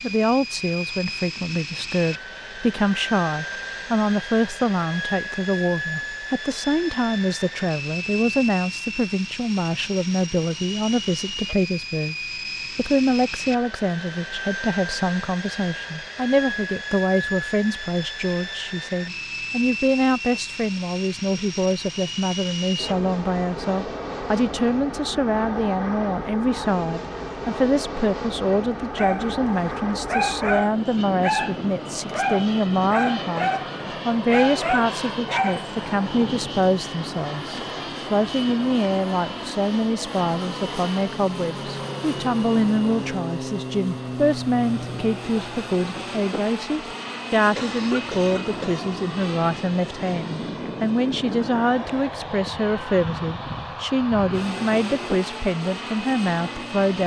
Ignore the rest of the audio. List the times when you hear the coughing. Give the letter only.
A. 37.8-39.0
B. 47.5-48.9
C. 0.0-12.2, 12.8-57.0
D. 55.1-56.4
B.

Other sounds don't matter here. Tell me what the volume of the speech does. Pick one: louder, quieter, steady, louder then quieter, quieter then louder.
steady.